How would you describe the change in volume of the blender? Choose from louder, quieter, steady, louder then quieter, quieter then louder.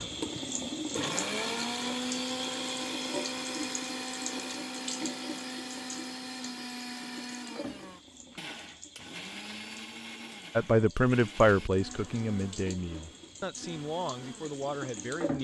quieter.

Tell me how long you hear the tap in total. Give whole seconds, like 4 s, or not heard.
15 s.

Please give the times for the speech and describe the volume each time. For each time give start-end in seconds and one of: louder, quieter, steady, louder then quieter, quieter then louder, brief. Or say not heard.
10.6-15.3 quieter.